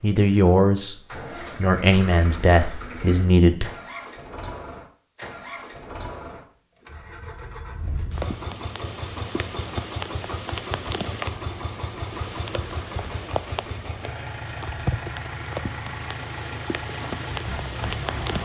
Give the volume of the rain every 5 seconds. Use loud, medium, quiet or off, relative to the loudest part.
off, loud, loud, loud.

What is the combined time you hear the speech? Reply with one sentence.
The speech can be heard for 3 seconds in total.